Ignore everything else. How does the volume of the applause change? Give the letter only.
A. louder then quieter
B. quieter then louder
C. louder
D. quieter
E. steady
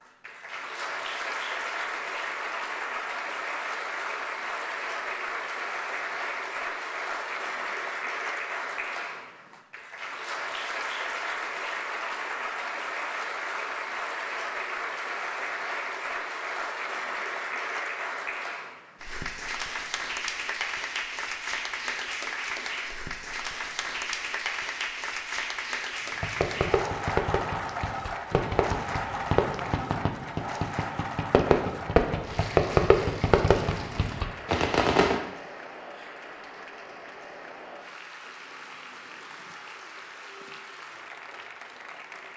D.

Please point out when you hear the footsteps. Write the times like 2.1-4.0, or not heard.
not heard.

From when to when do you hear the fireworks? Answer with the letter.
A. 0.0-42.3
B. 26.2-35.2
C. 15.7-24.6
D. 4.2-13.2
B.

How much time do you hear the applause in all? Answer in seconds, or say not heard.
42 s.